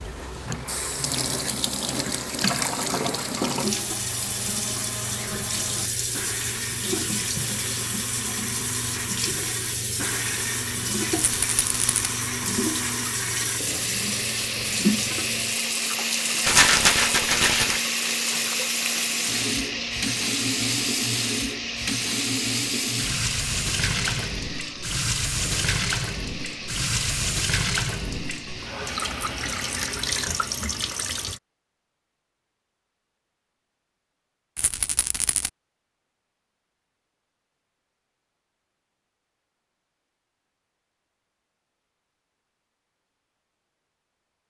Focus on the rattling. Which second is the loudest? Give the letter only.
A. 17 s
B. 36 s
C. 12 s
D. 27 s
A.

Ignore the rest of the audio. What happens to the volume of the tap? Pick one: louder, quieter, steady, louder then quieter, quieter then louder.
steady.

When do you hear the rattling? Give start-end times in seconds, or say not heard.
11.2-12.1, 16.4-17.8, 34.5-35.5.